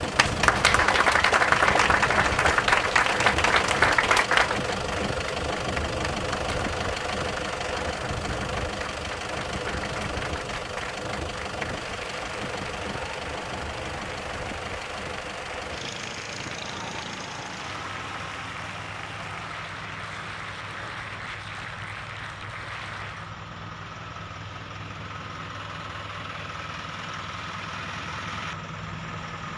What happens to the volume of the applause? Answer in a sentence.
The volume of the applause goes down.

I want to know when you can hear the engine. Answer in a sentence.
You can hear the engine from 0.0 to 29.5 s.